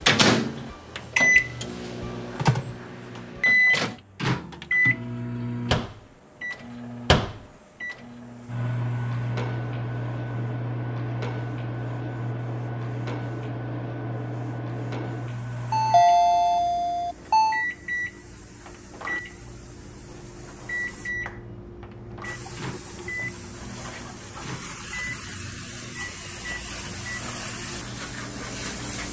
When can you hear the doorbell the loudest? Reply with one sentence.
The loudest moment of the doorbell is at 16 seconds.